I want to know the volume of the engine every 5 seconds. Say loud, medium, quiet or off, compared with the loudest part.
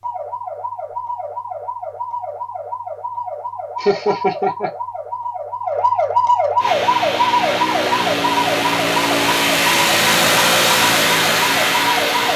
off, loud, loud.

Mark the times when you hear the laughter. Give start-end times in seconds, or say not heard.
3.8-4.7.